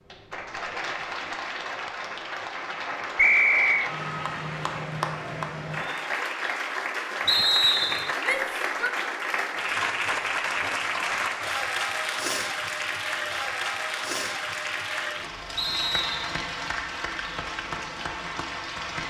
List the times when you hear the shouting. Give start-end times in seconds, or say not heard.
8.2-8.9.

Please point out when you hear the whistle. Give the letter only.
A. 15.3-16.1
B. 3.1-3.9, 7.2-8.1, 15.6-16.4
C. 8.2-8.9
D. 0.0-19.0
B.